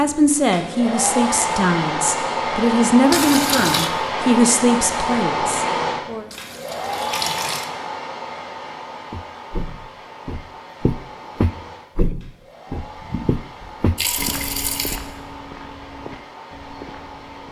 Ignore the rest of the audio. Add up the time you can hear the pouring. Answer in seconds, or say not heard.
4 s.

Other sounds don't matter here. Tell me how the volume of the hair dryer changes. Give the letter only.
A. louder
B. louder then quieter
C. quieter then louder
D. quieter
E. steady
D.